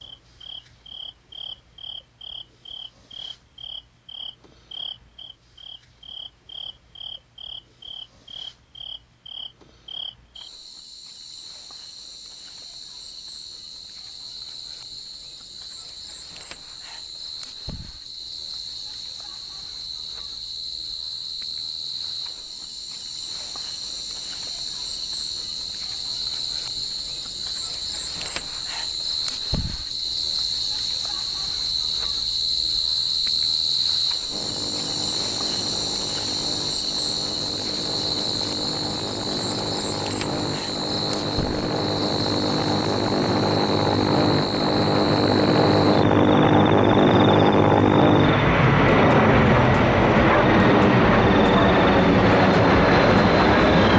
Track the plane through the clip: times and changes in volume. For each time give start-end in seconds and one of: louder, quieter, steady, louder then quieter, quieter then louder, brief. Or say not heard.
34.2-53.9 louder.